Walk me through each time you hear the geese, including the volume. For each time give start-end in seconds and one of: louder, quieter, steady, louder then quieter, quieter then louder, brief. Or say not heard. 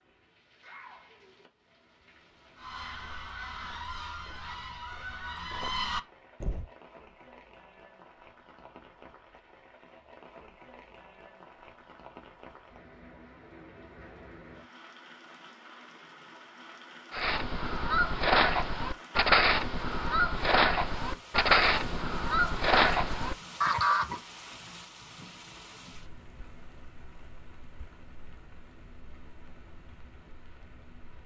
2.5-6.7 louder
17.1-24.2 steady.